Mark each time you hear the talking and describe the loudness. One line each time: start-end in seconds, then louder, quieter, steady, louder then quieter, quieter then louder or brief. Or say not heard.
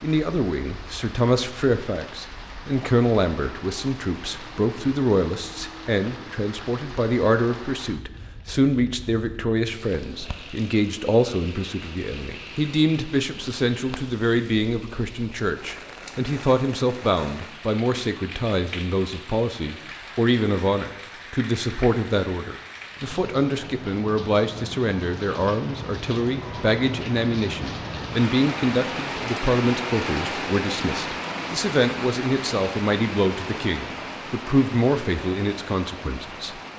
0.0-36.6 steady.